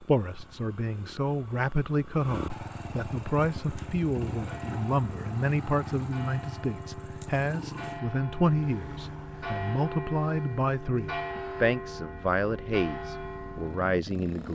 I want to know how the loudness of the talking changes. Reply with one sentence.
The loudness of the talking stays about the same.